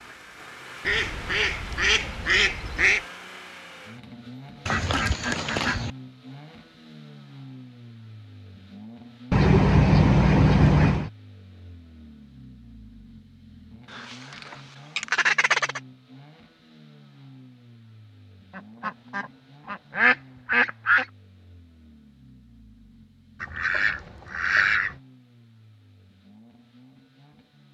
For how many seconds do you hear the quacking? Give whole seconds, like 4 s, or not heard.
11 s.